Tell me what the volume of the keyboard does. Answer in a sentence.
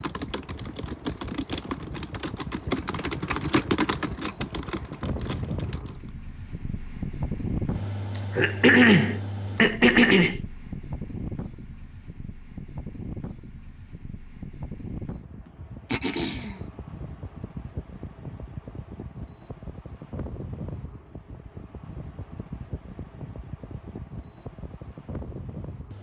The loudness of the keyboard goes up, then down.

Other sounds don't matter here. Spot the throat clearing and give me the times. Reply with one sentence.
You can hear the throat clearing from 8.3 to 10.4 s and from 15.4 to 16.6 s.